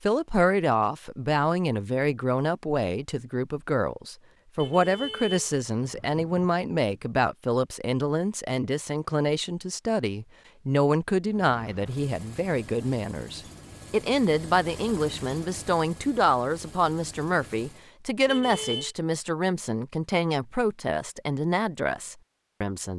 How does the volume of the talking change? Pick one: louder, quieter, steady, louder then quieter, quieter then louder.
steady.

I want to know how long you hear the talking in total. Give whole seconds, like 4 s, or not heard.
23 s.